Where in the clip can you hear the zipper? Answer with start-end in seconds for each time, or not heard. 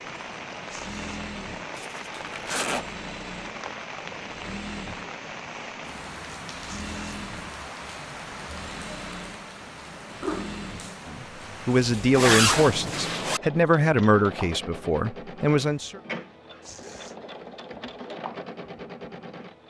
1.8-2.9, 12.1-13.4.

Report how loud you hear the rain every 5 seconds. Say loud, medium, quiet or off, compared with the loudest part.
loud, loud, loud, off.